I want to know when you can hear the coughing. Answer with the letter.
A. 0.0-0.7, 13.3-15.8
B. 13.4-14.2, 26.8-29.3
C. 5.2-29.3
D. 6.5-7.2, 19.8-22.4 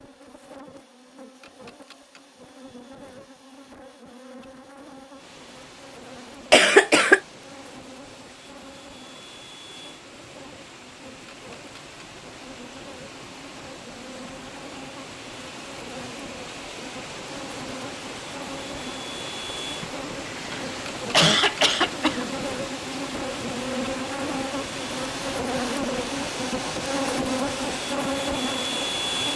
D.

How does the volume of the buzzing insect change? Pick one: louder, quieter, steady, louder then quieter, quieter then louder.
louder.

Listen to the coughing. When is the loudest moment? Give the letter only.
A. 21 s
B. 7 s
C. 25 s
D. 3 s
B.